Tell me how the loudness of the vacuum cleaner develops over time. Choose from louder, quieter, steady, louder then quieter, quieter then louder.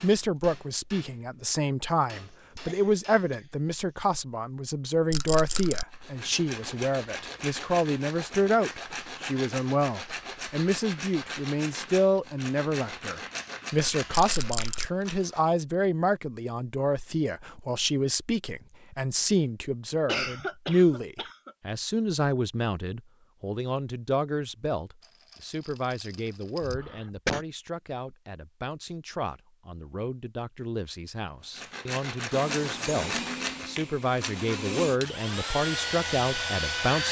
quieter then louder.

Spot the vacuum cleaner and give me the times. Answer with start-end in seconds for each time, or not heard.
32.3-37.0.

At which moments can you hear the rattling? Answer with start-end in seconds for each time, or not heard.
5.1-5.8, 14.1-14.9, 25.0-26.8.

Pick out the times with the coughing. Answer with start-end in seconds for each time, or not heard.
2.3-3.5, 20.1-21.6, 26.6-27.4.